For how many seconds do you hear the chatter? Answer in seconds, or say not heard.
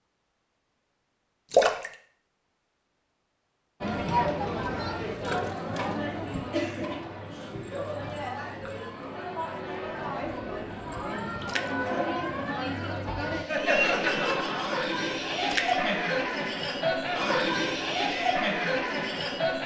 16 s.